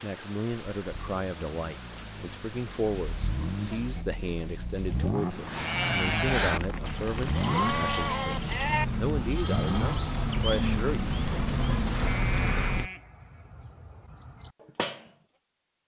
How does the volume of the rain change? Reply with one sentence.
The volume of the rain goes up.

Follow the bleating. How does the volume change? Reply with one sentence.
The loudness of the bleating goes down.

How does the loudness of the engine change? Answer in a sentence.
The loudness of the engine goes up.